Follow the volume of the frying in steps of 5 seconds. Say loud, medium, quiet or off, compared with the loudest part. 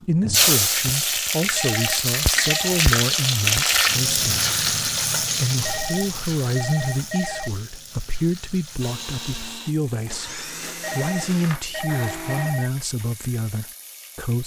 loud, medium, quiet.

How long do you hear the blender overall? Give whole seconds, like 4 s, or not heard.
4 s.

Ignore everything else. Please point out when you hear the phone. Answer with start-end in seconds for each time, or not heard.
1.4-2.9, 5.5-7.5, 10.7-12.7.